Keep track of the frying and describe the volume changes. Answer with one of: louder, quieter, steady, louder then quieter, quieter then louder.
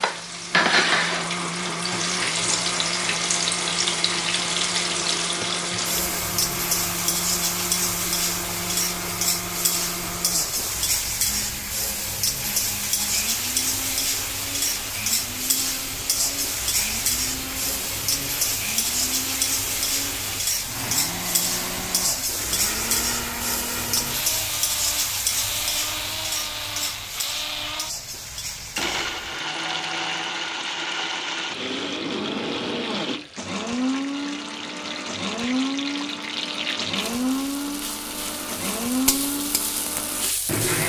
quieter.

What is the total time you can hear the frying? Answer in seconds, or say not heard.
41 s.